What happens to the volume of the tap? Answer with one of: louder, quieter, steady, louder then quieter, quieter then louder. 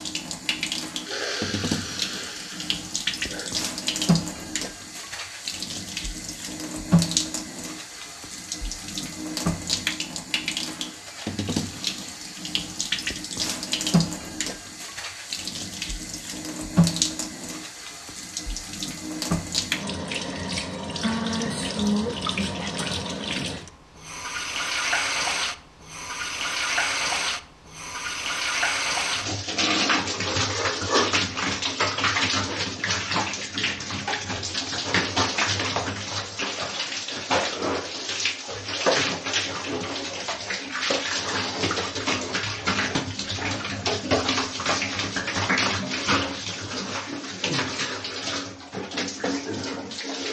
steady.